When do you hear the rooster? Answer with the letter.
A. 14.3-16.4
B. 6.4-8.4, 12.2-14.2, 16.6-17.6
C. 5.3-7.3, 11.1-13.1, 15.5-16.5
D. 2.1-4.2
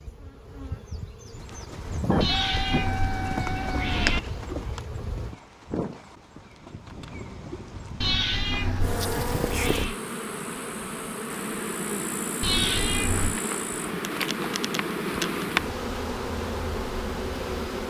D.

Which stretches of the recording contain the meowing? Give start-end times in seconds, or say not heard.
2.2-4.2, 8.0-9.9, 12.4-13.4.